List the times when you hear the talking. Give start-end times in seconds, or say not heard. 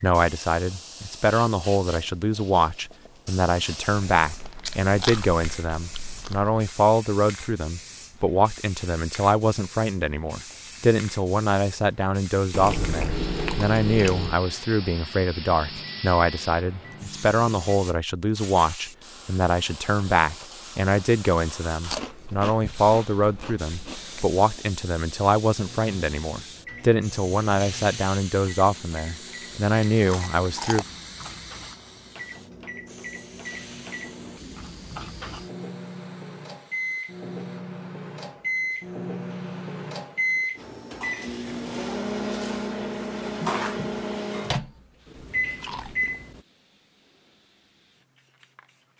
0.0-30.9.